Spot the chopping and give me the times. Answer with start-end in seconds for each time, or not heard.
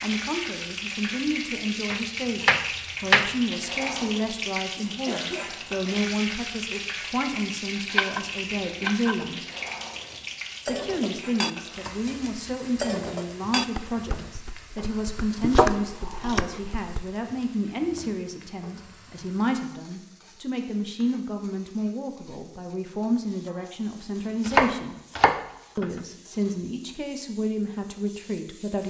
1.9-3.4, 7.8-9.2, 15.4-16.6, 24.4-25.9.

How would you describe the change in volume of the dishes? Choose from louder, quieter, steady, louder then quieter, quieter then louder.
quieter then louder.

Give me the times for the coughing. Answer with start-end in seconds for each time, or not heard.
5.0-5.8.